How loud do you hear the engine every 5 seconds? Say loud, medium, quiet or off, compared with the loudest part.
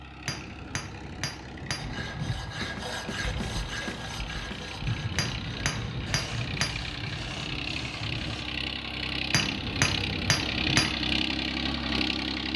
quiet, medium, loud.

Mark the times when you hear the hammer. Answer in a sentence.
You can hear the hammer from 0.2 to 2.0 s, from 5.2 to 6.8 s and from 9.3 to 10.9 s.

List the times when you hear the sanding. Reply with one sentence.
You can hear the sanding from 1.8 to 8.4 s.